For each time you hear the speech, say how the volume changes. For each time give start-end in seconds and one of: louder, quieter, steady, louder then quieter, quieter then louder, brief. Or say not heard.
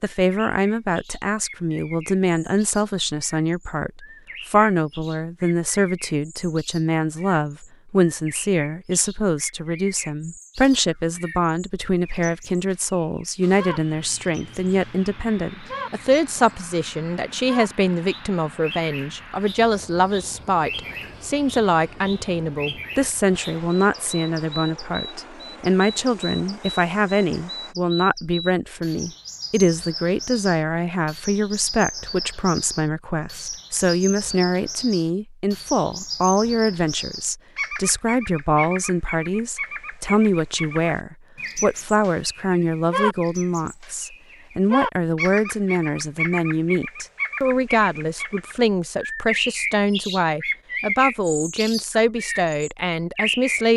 0.0-53.7 steady.